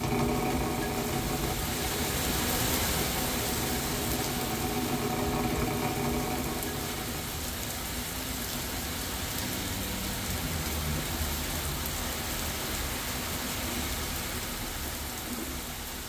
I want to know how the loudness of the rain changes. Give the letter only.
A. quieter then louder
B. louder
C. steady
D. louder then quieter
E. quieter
C.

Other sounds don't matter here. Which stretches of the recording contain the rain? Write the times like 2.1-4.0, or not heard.
0.0-16.0.